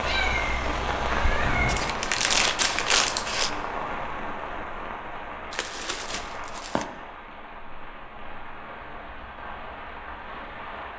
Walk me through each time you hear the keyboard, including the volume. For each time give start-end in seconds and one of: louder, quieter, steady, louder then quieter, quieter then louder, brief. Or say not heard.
not heard.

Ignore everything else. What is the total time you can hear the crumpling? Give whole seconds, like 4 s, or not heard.
3 s.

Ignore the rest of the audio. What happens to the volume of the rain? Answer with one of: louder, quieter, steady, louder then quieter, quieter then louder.
quieter.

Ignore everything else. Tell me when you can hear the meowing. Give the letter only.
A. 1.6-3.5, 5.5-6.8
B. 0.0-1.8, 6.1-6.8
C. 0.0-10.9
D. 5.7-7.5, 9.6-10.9
B.